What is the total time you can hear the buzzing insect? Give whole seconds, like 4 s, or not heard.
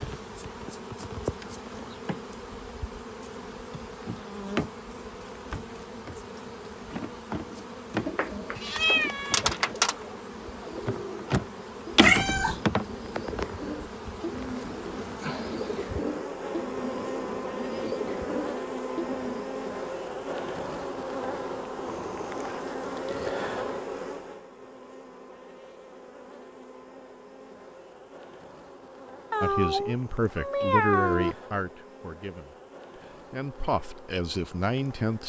35 s.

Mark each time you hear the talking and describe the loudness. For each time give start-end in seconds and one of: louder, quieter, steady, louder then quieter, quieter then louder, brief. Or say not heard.
29.4-35.2 quieter then louder.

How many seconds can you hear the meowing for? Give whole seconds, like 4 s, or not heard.
4 s.